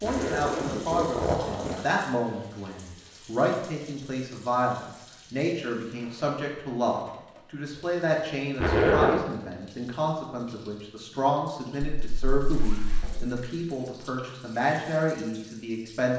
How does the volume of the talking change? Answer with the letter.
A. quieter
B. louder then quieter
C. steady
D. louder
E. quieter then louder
C.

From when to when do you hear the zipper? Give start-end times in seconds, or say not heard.
0.0-1.9, 8.6-9.2, 12.0-13.3.